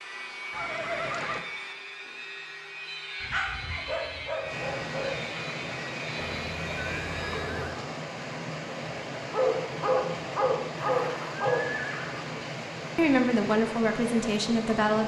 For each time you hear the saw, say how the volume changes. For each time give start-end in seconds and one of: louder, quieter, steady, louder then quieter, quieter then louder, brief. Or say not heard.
0.0-7.5 steady.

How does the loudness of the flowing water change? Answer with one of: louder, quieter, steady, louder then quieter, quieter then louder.
steady.